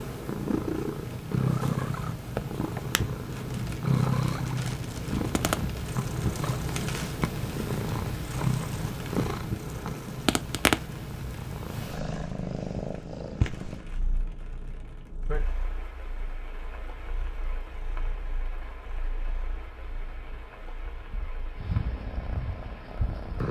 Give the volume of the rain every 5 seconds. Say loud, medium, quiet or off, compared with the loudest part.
loud, loud, medium, medium, quiet.